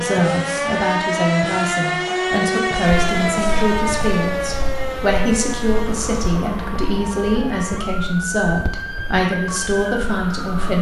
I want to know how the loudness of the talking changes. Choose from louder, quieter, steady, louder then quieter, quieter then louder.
steady.